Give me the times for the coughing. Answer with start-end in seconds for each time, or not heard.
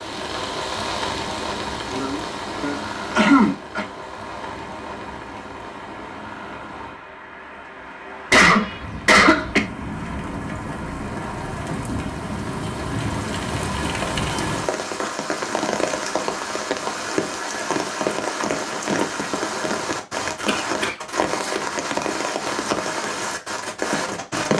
1.8-3.9, 8.3-9.6, 20.4-21.6.